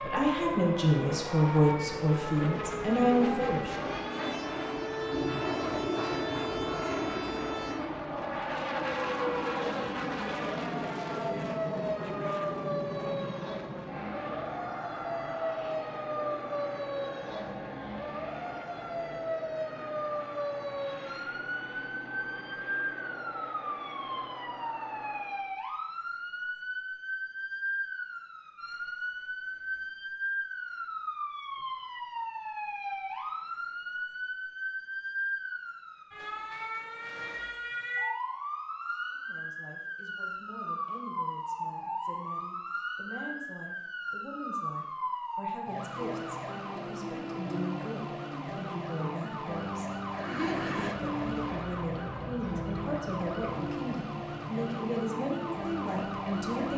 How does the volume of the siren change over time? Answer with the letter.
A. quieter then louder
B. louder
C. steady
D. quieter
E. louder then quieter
C.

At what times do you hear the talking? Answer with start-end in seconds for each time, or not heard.
0.0-3.8, 39.1-56.7.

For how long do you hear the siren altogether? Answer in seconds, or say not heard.
57 s.